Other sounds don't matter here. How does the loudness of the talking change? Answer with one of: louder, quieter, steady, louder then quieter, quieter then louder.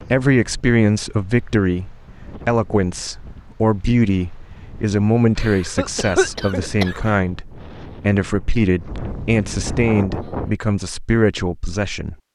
steady.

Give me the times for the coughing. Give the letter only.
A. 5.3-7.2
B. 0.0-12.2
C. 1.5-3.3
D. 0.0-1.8
A.